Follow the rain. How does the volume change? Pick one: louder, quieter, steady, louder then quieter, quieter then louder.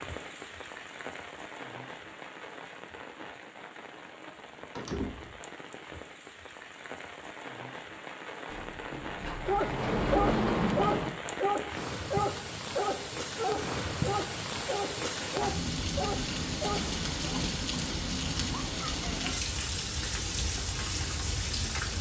louder.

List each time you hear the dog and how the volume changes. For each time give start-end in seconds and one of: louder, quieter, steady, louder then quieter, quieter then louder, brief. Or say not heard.
9.4-17.4 quieter.